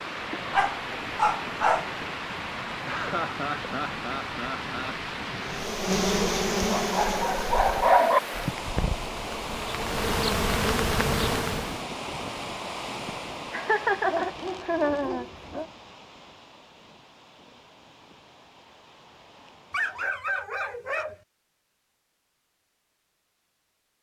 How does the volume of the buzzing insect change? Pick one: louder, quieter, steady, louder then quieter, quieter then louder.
quieter then louder.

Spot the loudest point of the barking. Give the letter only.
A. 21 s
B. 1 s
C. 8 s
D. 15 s
C.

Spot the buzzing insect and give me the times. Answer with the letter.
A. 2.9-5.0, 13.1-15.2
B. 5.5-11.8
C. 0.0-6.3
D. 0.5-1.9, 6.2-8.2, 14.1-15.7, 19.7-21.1
B.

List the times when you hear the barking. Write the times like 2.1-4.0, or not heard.
0.5-1.9, 6.2-8.2, 14.1-15.7, 19.7-21.1.